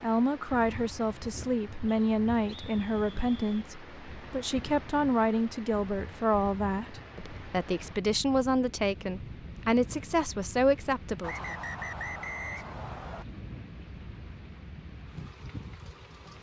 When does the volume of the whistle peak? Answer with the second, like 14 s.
12 s.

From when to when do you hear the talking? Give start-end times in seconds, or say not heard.
0.0-11.6.